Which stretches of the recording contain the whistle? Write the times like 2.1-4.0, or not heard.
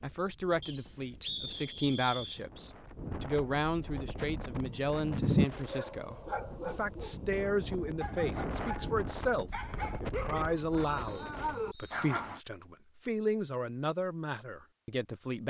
0.6-2.5, 9.7-12.0.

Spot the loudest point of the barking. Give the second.
5 s.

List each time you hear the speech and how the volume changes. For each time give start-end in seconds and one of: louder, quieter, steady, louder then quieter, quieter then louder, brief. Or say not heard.
0.0-15.4 steady.